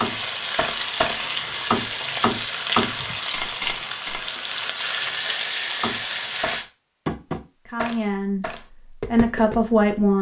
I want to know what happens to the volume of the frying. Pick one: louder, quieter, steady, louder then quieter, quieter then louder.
steady.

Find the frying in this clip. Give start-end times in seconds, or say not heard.
0.0-6.7.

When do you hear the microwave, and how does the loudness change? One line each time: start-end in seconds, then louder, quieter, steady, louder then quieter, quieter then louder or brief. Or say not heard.
not heard.